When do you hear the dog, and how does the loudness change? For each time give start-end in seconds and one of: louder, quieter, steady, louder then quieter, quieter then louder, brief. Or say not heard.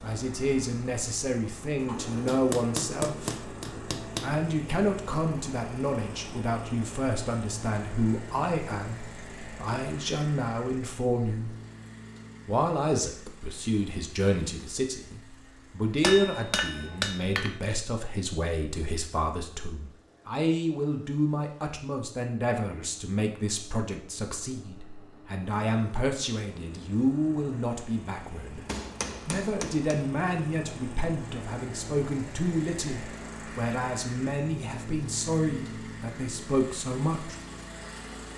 not heard.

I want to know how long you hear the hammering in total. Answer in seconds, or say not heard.
5 s.